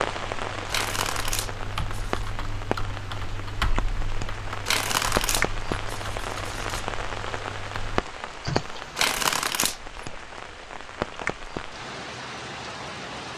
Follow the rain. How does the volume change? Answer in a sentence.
The loudness of the rain stays about the same.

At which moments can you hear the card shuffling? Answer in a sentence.
The card shuffling can be heard from 0.7 to 2.2 s, from 4.7 to 6.8 s and from 8.9 to 10.0 s.